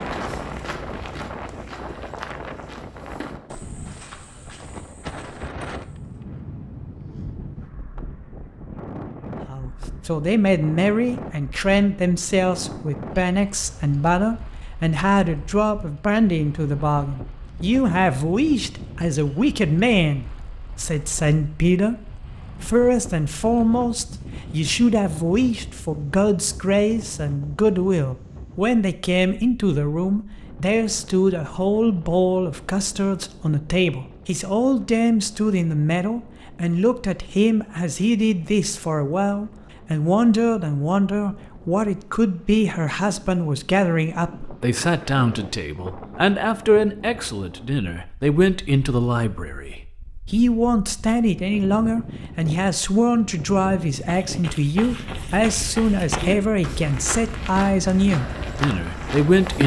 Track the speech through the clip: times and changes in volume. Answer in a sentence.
You can hear the speech from 9.4 to 22.0 s, at a steady volume; and from 22.6 to 59.6 s, at a steady volume.